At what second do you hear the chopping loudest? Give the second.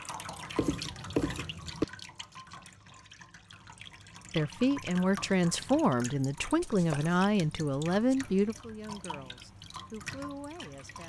1 s.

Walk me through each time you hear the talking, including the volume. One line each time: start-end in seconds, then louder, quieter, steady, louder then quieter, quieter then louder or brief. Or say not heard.
4.3-11.0 quieter.